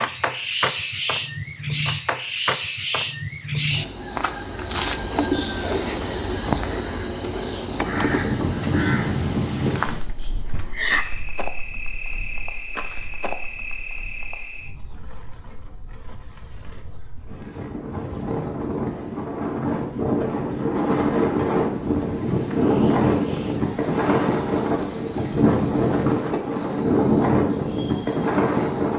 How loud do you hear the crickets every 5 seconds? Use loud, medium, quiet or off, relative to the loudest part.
loud, loud, medium, quiet, quiet, quiet.